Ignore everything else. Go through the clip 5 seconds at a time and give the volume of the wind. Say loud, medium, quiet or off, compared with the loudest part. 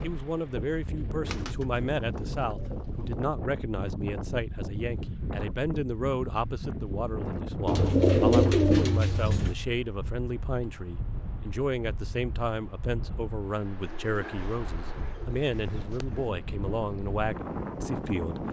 loud, loud, medium, loud.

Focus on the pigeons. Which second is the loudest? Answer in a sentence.
The loudest moment of the pigeons is at 8 seconds.